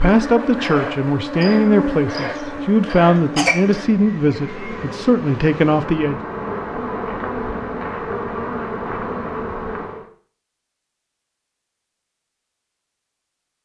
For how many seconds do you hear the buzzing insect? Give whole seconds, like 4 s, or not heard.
10 s.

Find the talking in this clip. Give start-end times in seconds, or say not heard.
0.0-6.2.